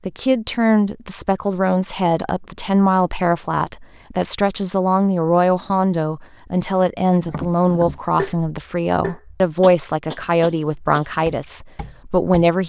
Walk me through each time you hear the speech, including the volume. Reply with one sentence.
You can hear the speech from 0.1 to 12.6 s, at a steady volume.